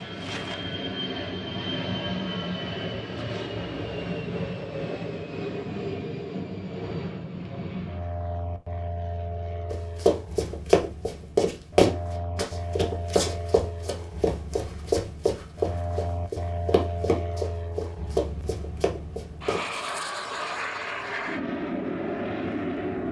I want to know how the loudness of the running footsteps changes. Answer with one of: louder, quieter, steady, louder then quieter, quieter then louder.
quieter.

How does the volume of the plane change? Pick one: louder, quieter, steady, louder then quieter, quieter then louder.
quieter then louder.